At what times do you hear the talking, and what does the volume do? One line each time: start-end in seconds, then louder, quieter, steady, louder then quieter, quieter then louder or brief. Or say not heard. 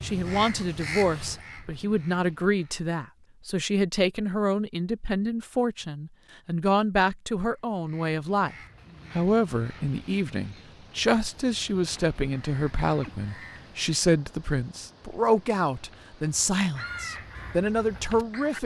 0.0-18.6 steady.